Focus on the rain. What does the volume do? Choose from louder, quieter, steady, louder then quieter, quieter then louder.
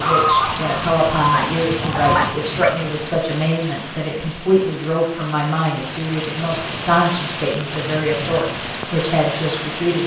quieter then louder.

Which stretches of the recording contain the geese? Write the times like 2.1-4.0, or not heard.
0.0-2.2.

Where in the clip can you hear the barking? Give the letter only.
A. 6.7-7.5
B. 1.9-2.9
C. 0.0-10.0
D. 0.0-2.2
B.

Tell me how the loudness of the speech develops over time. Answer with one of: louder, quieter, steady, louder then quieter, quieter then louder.
steady.